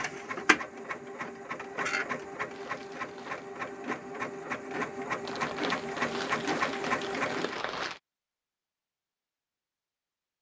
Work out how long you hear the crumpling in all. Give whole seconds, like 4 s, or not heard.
4 s.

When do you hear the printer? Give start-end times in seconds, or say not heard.
0.0-7.6.